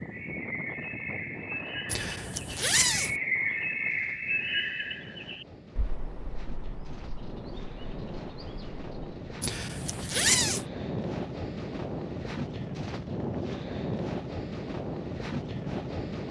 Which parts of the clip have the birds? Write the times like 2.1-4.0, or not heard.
0.0-9.2.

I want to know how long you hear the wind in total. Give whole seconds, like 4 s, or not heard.
16 s.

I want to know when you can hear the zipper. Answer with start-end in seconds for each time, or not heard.
1.9-3.1, 9.4-10.7.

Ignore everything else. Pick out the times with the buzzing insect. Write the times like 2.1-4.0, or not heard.
not heard.